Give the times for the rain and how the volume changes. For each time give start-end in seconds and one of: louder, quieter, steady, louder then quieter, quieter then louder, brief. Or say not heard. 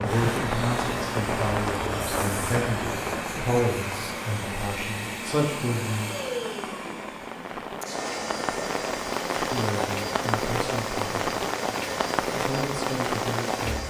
0.0-13.8 quieter then louder.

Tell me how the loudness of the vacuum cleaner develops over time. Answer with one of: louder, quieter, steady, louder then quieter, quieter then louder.
steady.